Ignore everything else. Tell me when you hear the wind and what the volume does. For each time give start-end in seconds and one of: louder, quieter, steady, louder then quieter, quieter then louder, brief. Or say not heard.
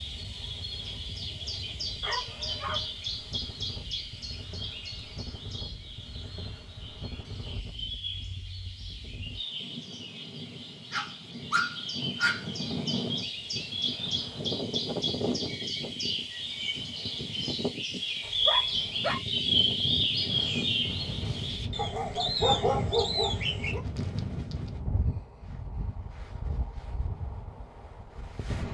0.0-28.6 louder.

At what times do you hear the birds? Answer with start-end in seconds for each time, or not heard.
0.0-23.8.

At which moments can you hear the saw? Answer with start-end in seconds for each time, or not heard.
not heard.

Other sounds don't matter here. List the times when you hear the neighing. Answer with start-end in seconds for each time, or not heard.
not heard.